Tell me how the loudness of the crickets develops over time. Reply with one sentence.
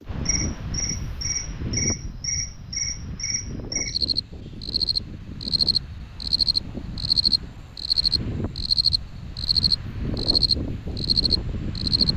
The volume of the crickets goes up.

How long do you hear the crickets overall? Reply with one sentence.
You can hear the crickets for 12 seconds altogether.